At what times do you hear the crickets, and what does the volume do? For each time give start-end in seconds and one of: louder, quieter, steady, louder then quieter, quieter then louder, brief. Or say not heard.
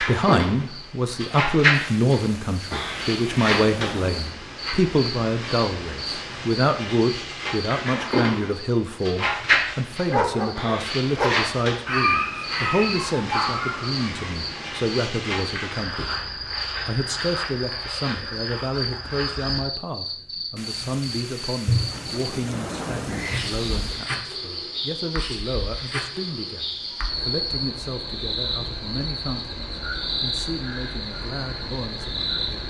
0.0-32.6 steady.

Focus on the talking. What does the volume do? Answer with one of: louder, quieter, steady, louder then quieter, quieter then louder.
quieter.